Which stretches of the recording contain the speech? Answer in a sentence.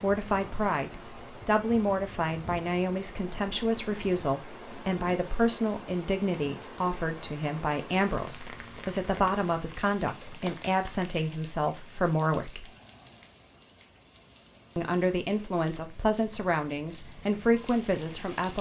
The speech can be heard from 0.0 to 12.7 s and from 14.8 to 18.5 s.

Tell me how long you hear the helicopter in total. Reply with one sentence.
You can't hear the helicopter here.